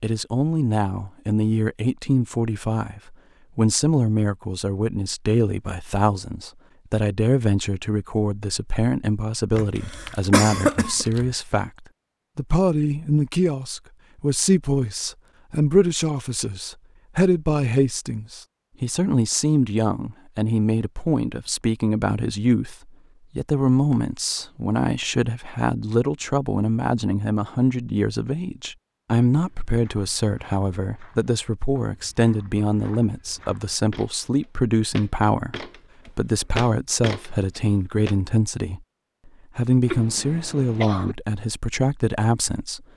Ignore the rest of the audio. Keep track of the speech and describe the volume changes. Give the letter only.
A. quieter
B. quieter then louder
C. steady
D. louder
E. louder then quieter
C.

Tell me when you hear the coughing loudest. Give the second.
11 s.